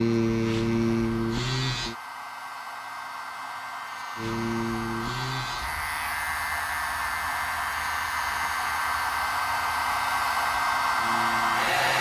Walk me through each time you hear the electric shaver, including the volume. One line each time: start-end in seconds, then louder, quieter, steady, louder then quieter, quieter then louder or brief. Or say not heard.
0.0-1.9 brief
4.2-11.9 quieter.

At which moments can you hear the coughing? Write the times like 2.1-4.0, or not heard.
not heard.